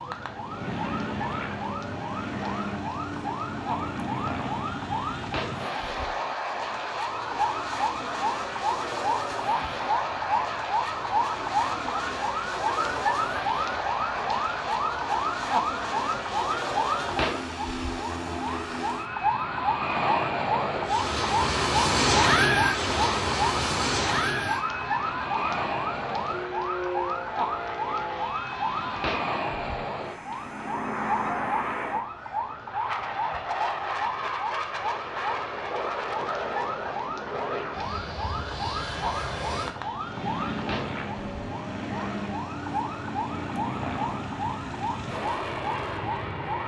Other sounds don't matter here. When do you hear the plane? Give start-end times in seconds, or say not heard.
0.0-46.6.